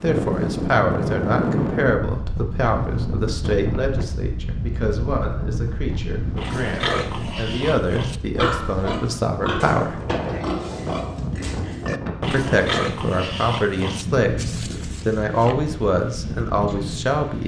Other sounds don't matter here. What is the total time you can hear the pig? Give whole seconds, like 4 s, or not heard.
9 s.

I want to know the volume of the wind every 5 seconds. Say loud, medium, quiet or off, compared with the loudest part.
loud, medium, medium, medium.